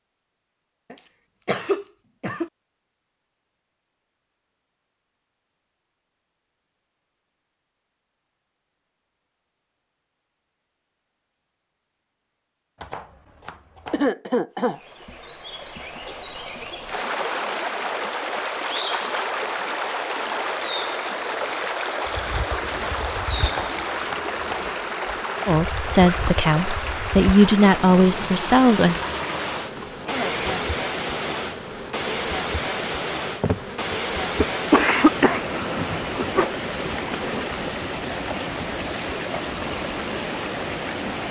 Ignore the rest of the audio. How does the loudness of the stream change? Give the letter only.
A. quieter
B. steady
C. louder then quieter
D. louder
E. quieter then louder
B.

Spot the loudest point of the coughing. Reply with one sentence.
The loudest moment of the coughing is at 35 seconds.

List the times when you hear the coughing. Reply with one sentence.
You can hear the coughing from 0.9 to 2.5 s, from 13.9 to 14.8 s and from 34.4 to 36.5 s.